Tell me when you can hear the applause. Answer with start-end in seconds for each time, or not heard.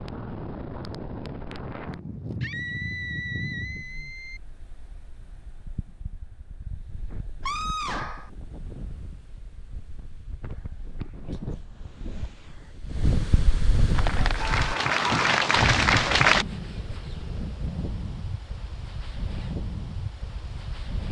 13.9-16.4.